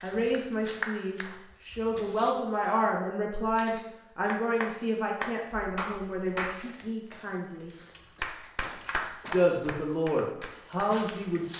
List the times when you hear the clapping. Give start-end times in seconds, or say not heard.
0.0-1.4, 4.2-6.5, 8.2-11.5.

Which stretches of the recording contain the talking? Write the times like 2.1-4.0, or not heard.
0.0-7.7, 9.3-11.5.